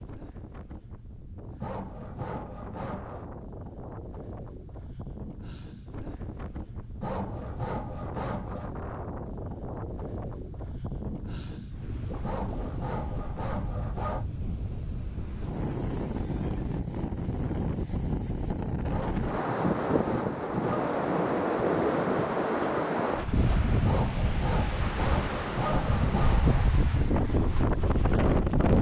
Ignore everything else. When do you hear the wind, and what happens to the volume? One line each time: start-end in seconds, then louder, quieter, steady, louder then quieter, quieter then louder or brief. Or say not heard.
0.0-28.7 louder.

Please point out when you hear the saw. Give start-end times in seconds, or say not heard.
1.6-3.3, 7.0-8.8, 12.2-14.2, 18.9-20.9, 23.8-26.7.